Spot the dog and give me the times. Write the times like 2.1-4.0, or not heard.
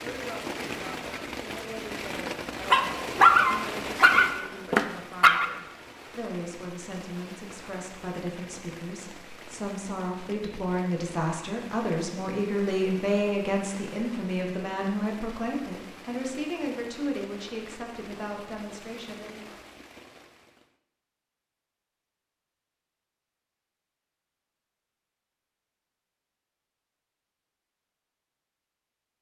2.7-5.5.